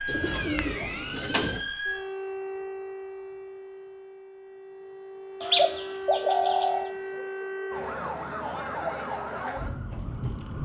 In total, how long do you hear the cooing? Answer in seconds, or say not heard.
3 s.